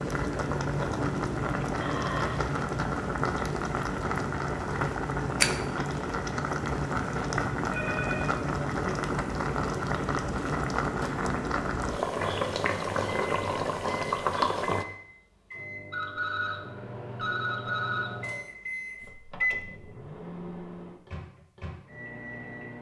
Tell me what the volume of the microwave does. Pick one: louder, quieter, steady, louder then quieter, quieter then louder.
louder then quieter.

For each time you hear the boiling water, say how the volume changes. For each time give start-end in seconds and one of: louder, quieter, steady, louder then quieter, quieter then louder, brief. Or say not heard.
0.0-14.8 steady.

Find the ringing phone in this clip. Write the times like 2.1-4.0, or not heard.
1.8-2.5, 7.7-8.3, 15.9-18.2.